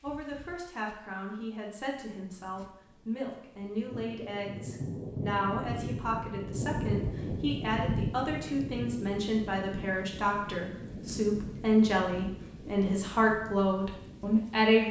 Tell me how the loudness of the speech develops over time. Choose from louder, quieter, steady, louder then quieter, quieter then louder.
louder.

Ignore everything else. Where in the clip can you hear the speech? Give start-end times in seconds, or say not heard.
0.0-14.8.